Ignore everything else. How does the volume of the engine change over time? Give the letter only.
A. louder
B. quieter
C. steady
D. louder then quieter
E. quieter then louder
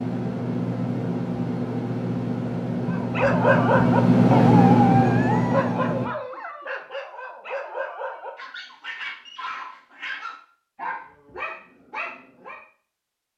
A.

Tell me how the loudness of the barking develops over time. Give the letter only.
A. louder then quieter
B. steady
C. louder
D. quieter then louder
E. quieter
E.